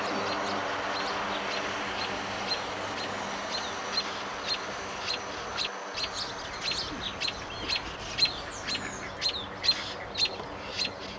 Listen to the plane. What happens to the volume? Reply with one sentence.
The volume of the plane goes down.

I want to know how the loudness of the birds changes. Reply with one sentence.
The volume of the birds goes up.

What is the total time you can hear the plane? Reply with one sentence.
The plane can be heard for 11 seconds in total.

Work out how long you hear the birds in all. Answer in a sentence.
You can hear the birds for 11 seconds altogether.